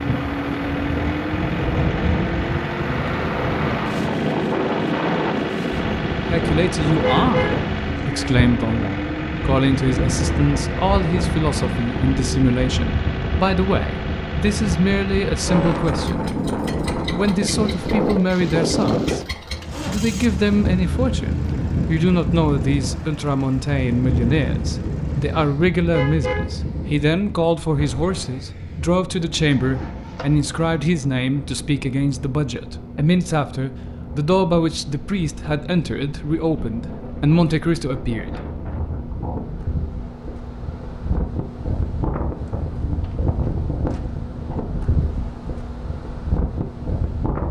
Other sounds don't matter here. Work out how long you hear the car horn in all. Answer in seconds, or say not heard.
2 s.